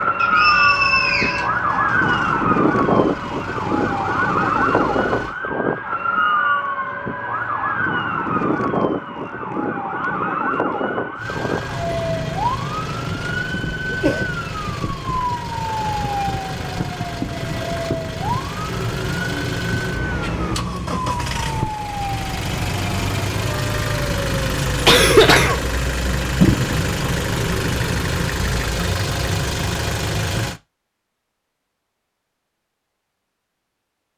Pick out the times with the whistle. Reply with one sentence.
The whistle can be heard from 0.1 to 1.5 s.